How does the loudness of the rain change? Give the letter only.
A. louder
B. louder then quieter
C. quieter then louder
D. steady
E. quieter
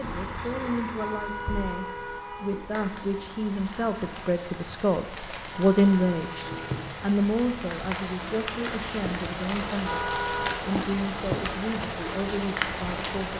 A.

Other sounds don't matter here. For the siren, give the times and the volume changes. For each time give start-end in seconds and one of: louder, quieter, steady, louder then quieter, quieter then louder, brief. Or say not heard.
not heard.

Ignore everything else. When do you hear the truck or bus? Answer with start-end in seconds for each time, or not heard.
0.0-4.3.